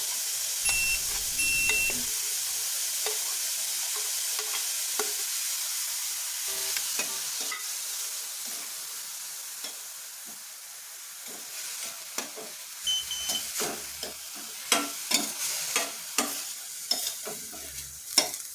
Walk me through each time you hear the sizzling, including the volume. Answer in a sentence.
You can hear the sizzling from 0.0 to 18.5 s, getting quieter then louder.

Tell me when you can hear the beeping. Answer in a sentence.
The beeping can be heard from 0.7 to 2.1 s, from 6.5 to 7.2 s and from 12.8 to 13.5 s.